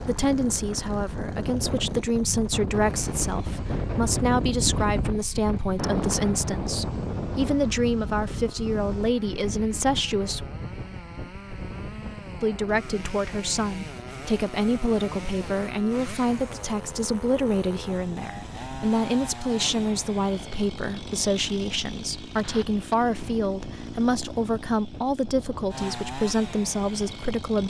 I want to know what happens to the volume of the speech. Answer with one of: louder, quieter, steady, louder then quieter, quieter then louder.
steady.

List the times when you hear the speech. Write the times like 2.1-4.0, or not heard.
0.0-10.4, 12.4-27.6.